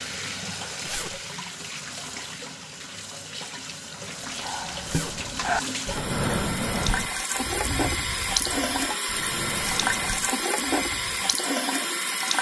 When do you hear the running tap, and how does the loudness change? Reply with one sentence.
The running tap can be heard from 0.0 to 12.3 s, getting louder.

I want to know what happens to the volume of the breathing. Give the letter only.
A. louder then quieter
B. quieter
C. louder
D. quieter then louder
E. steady
B.